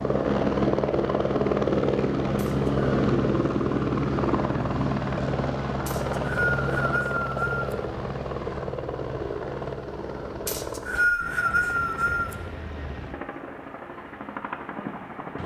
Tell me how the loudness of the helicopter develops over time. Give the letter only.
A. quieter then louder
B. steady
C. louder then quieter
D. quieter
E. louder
D.